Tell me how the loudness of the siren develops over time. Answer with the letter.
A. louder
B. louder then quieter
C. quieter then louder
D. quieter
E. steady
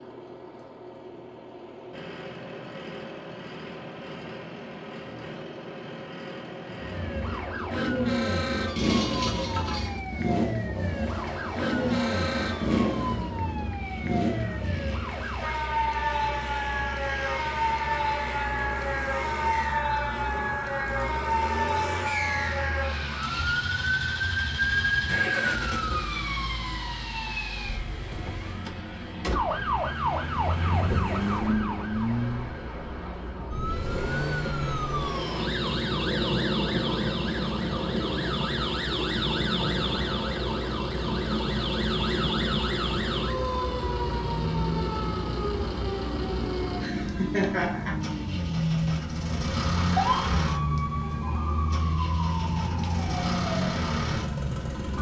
E.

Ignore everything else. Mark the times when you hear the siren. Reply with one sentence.
The siren can be heard from 6.7 to 54.9 s.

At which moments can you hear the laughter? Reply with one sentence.
You can hear the laughter from 46.7 to 48.0 s.